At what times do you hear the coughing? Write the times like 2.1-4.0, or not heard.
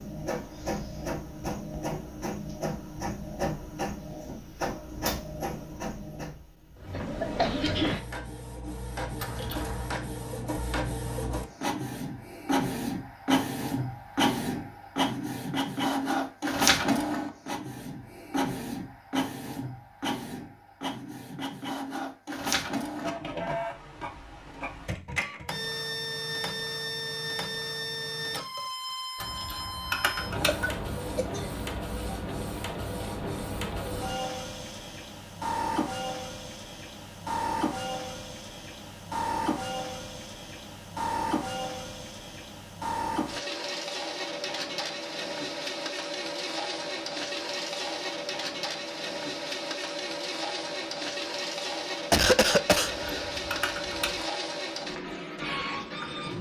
7.2-8.0, 30.4-31.6, 52.1-53.3.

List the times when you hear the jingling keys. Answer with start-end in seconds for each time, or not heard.
9.2-9.9, 29.2-30.6, 52.8-54.2.